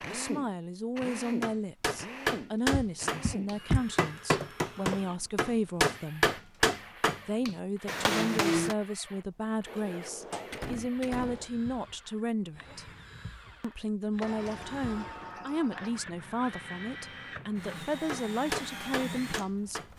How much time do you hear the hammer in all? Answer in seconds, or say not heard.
9 s.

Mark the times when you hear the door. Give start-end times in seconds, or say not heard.
2.7-3.9, 9.7-11.5, 14.2-16.0.